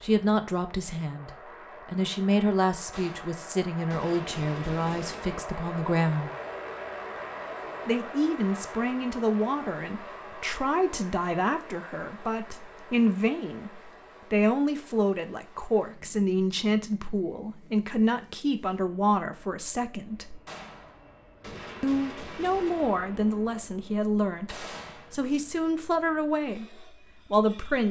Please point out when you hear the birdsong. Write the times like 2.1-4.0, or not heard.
not heard.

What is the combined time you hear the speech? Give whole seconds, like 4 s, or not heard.
25 s.